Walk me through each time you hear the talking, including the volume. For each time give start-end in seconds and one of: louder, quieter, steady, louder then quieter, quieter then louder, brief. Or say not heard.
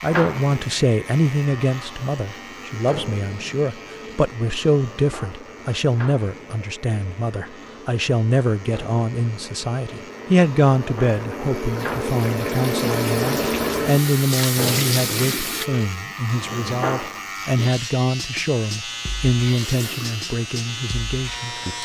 0.0-21.8 steady.